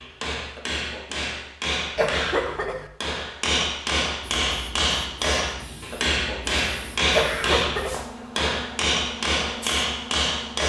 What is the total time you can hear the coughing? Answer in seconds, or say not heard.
2 s.